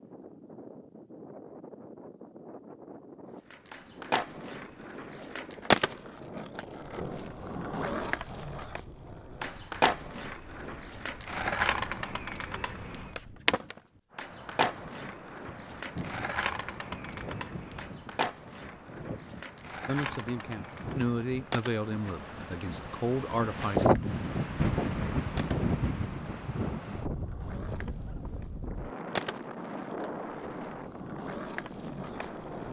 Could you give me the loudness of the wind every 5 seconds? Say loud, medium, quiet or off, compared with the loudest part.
quiet, quiet, quiet, quiet, loud, loud, medium.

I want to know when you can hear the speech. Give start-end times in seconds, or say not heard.
19.9-23.9.